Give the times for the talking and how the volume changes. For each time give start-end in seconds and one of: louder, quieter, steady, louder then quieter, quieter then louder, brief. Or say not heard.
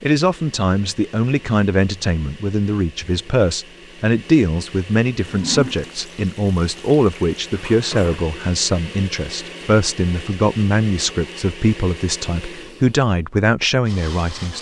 0.0-14.5 steady.